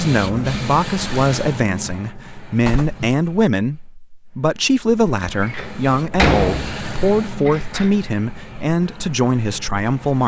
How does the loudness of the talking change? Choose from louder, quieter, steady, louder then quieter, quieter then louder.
steady.